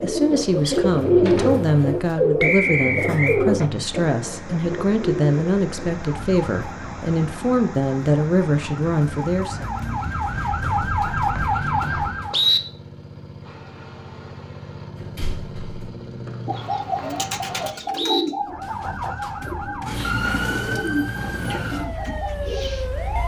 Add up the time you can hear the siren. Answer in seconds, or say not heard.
11 s.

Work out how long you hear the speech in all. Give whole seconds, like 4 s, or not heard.
10 s.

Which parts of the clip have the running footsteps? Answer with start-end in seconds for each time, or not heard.
not heard.